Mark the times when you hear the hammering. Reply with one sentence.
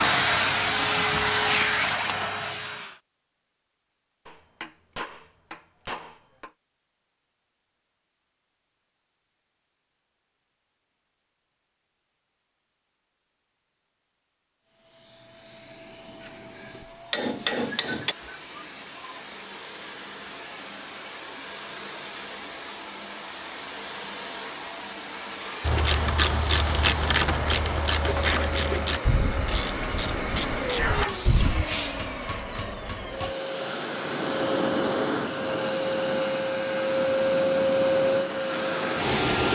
The hammering can be heard from 4.2 to 6.5 s, from 16.2 to 18.1 s and from 30.9 to 33.4 s.